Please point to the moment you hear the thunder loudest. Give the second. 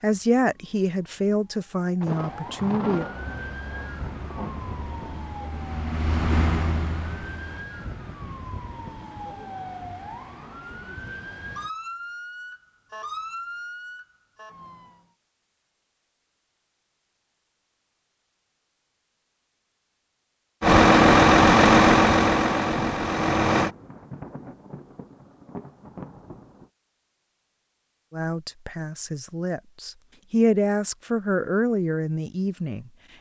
3 s.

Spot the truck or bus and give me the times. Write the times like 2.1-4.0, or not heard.
3.1-7.7, 20.6-23.7.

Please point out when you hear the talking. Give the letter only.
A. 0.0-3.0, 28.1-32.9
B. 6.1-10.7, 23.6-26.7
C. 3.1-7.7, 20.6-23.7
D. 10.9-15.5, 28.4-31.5
A.